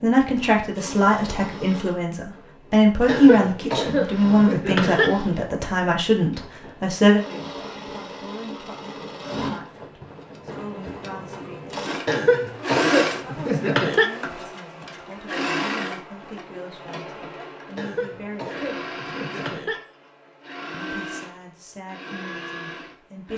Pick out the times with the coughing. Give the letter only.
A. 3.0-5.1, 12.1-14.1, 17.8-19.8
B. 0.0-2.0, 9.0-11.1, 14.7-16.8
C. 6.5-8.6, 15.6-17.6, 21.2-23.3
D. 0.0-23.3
A.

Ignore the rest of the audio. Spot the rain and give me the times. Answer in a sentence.
The rain can't be heard in this clip.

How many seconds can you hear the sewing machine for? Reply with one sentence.
You can hear the sewing machine for 23 seconds altogether.